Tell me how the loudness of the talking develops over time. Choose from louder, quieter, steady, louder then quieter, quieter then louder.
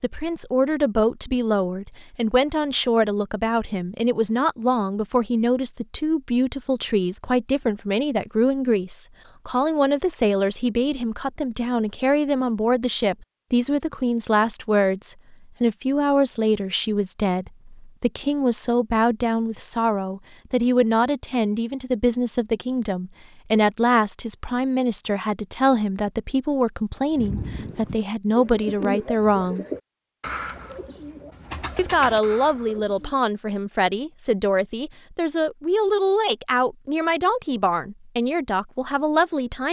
steady.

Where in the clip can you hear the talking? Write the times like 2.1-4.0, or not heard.
0.0-29.6, 31.8-39.6.